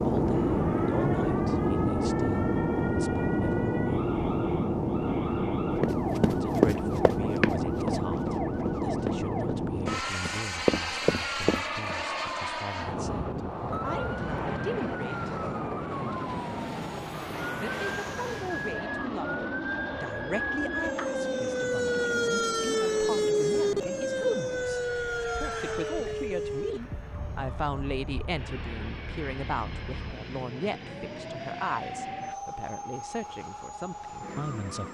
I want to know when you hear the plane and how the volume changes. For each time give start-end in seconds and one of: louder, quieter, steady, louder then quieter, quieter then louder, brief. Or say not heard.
0.0-34.9 quieter.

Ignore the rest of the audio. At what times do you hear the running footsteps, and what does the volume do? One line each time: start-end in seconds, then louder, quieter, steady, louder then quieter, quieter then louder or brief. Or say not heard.
5.8-11.9 quieter then louder.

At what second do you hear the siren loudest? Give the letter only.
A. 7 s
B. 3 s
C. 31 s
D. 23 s
D.